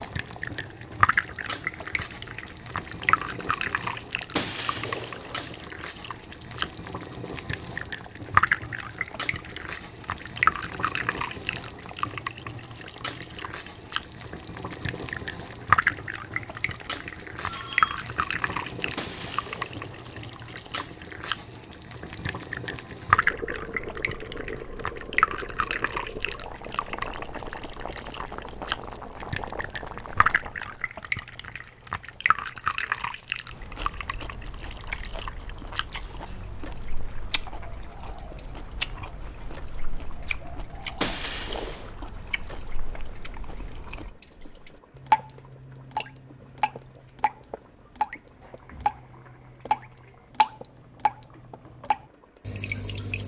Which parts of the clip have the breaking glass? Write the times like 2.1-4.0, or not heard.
4.3-5.7, 18.9-20.2, 41.0-42.0.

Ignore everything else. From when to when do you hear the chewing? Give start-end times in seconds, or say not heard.
33.5-44.1.